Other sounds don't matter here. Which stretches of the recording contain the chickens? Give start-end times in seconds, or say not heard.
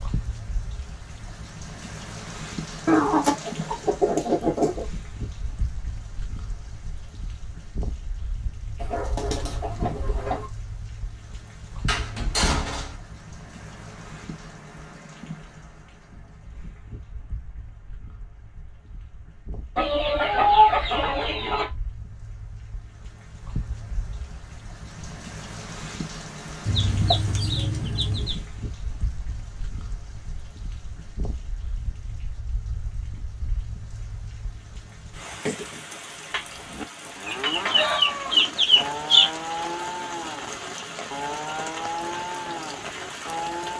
2.9-4.8, 8.8-10.5, 19.8-21.7, 26.6-28.4, 37.2-39.2.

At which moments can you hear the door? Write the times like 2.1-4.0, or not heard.
11.8-12.9.